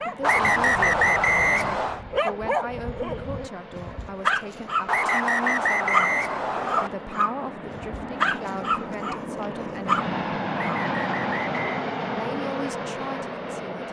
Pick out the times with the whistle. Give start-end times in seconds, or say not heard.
0.2-2.0, 4.8-6.9, 10.6-11.6.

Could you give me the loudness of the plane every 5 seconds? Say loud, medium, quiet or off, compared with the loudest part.
quiet, medium, loud.